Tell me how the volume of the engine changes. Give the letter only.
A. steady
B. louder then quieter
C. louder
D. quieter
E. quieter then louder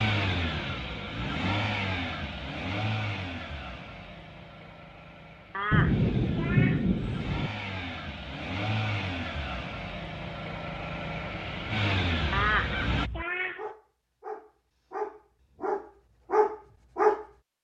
E.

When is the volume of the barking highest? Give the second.
17 s.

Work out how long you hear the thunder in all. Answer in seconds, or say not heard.
2 s.